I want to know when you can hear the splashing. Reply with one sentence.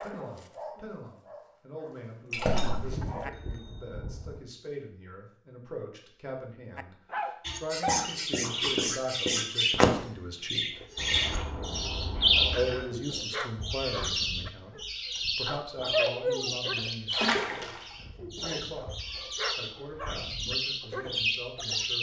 You can hear the splashing from 2.3 to 2.9 s and from 17.1 to 17.9 s.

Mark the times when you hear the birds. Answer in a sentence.
The birds can be heard from 7.5 to 21.9 s.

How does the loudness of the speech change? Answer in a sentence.
The volume of the speech goes up, then down.